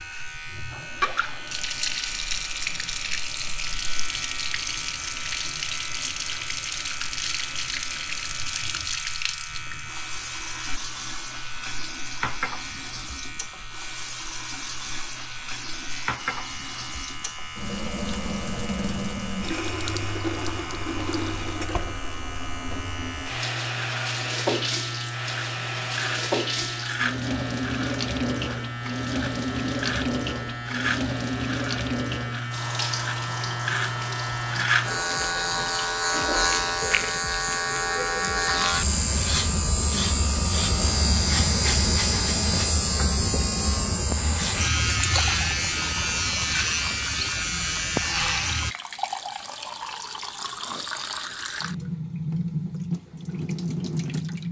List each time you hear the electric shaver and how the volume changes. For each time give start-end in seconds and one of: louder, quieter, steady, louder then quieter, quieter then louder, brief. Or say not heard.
0.0-48.8 louder.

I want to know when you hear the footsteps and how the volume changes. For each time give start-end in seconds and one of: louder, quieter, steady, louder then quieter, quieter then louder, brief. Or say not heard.
not heard.